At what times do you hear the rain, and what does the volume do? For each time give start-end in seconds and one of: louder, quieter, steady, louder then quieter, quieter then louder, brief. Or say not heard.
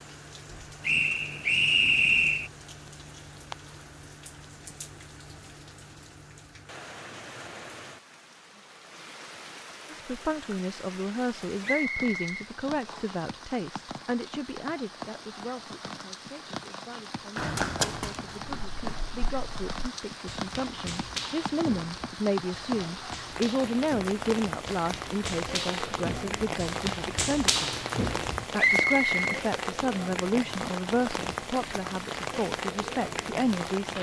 0.0-33.9 louder.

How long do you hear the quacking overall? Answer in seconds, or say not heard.
not heard.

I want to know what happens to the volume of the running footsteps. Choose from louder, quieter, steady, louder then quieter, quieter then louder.
quieter then louder.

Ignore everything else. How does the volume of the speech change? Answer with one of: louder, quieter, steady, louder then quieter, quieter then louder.
quieter then louder.